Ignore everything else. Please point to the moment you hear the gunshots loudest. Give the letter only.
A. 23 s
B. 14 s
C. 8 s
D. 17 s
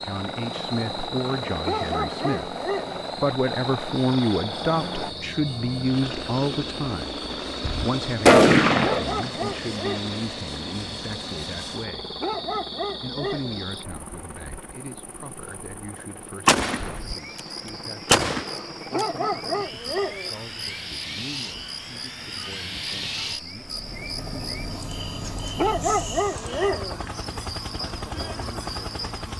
C.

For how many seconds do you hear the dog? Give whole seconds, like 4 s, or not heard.
7 s.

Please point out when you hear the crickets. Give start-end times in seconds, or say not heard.
0.0-29.3.